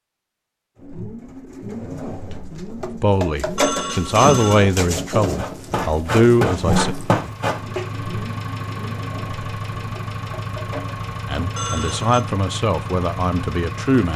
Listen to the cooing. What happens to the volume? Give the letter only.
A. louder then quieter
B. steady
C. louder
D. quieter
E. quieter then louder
A.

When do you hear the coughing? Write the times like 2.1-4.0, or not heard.
not heard.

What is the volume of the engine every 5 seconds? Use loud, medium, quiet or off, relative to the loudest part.
off, loud, loud.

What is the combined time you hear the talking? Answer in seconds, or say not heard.
7 s.